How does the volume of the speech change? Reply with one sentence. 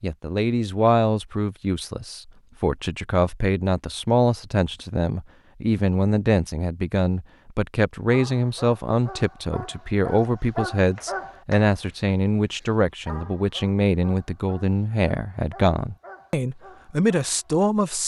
The volume of the speech stays about the same.